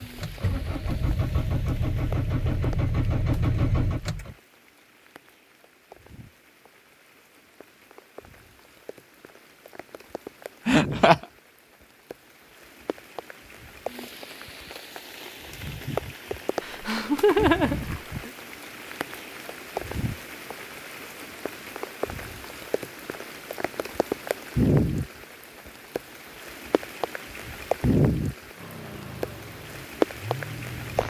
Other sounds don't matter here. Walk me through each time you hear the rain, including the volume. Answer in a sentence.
You can hear the rain from 0.0 to 31.0 s, getting louder.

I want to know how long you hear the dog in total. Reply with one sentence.
You can't hear the dog here.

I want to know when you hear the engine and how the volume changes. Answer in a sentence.
The engine can be heard from 0.0 to 4.3 s, getting louder; and briefly from 28.6 to 31.0 s.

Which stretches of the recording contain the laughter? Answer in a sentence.
You can hear the laughter from 10.7 to 11.2 s and from 16.6 to 18.3 s.